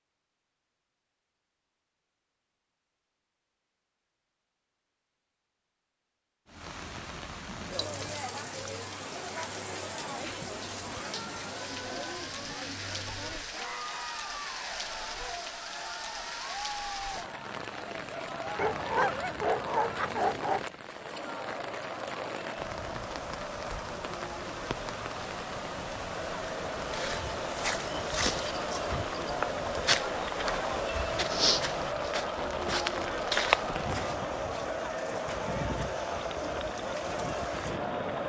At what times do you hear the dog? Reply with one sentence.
You can hear the dog from 18.6 to 20.6 s.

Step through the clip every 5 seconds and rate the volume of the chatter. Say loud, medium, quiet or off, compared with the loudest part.
off, medium, medium, medium, medium, loud, loud, loud.